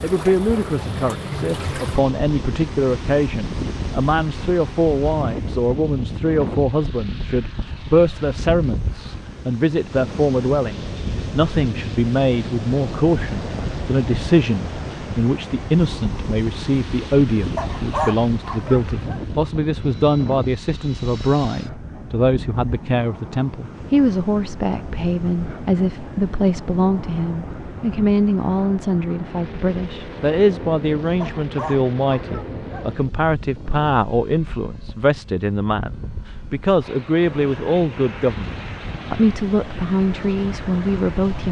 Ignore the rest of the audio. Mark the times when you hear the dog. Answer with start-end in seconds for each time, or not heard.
17.6-19.2, 31.2-33.0.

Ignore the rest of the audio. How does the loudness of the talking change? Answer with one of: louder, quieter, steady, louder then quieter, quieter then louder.
steady.